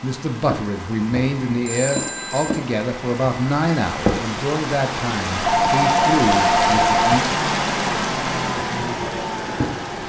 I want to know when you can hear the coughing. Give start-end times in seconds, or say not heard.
not heard.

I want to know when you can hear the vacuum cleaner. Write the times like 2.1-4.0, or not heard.
0.0-10.0.